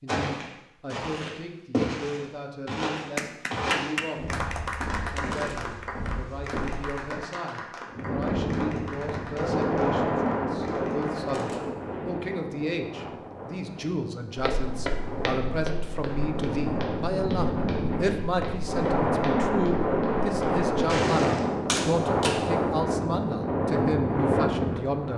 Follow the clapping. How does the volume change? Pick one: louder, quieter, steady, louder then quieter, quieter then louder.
quieter.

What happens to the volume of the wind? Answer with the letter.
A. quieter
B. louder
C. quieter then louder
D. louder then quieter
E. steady
C.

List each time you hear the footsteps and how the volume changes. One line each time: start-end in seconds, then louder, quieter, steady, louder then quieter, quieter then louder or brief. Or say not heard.
0.1-7.0 louder then quieter
14.3-21.4 quieter then louder.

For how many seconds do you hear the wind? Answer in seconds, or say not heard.
17 s.